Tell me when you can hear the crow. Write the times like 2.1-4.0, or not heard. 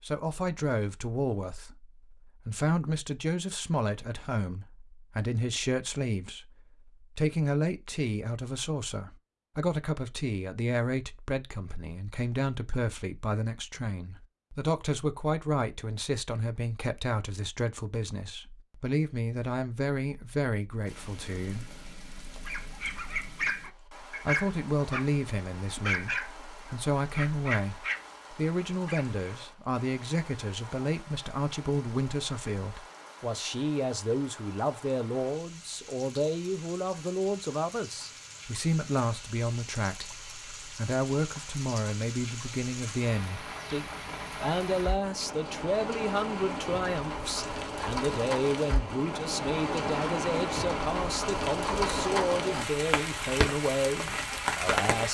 not heard.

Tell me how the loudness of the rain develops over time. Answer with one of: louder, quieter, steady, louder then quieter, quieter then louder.
louder.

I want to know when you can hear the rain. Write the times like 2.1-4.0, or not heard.
20.9-55.0.